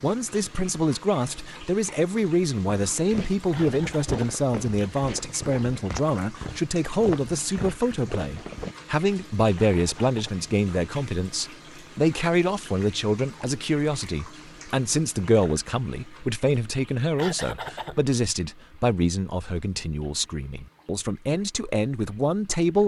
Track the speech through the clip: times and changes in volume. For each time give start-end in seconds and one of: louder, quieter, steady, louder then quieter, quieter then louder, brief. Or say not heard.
0.0-22.8 steady.